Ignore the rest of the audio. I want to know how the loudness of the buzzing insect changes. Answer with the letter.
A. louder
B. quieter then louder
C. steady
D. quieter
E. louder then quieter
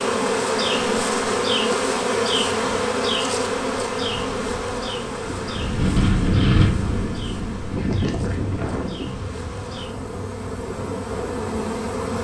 B.